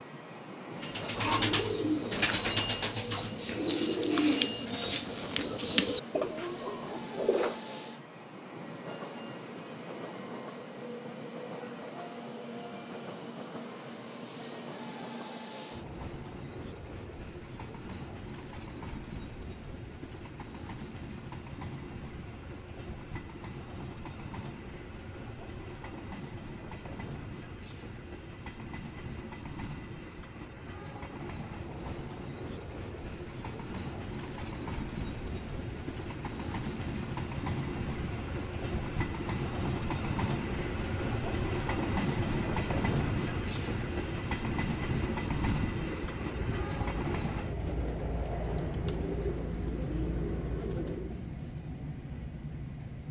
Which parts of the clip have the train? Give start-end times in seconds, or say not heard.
0.0-53.0.